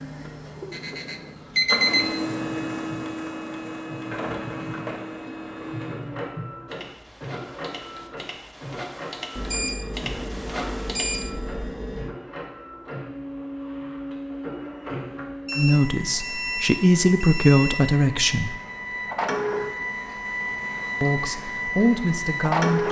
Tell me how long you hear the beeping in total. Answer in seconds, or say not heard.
7 s.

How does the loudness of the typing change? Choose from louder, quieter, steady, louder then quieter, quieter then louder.
louder.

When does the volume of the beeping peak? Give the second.
2 s.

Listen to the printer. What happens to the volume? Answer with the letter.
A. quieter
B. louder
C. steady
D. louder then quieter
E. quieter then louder
E.